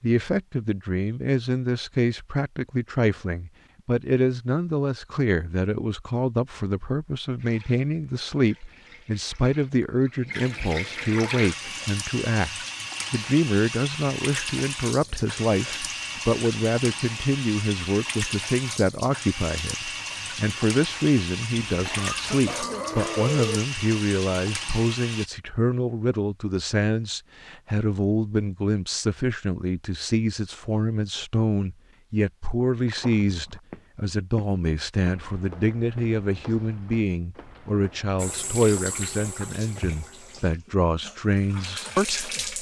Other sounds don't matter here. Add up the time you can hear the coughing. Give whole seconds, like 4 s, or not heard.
2 s.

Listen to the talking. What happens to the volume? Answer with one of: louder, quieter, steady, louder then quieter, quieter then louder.
steady.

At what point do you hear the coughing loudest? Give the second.
23 s.